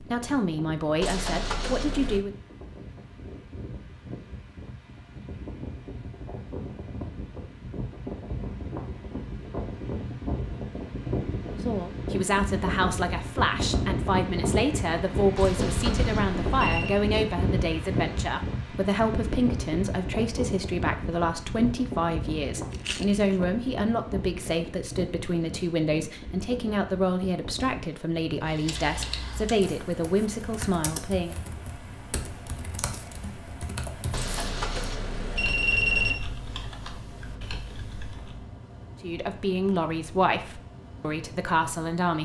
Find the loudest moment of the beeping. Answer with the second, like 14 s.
36 s.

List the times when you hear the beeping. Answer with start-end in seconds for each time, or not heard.
1.0-2.2, 15.3-16.9, 34.1-36.1.